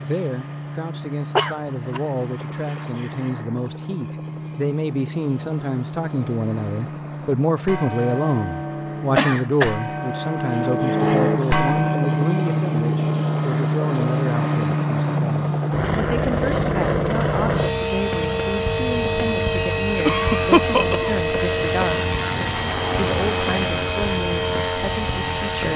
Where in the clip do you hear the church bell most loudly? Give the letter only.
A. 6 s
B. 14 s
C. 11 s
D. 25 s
C.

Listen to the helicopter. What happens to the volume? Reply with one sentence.
The volume of the helicopter goes up.